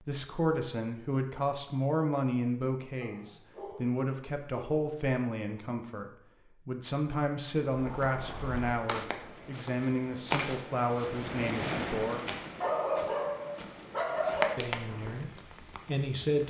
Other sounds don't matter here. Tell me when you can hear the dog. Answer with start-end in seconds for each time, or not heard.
3.0-4.9, 12.6-14.5.